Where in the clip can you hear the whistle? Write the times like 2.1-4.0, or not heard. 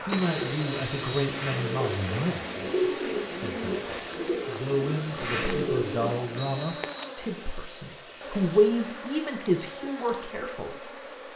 0.1-1.3, 6.3-7.2.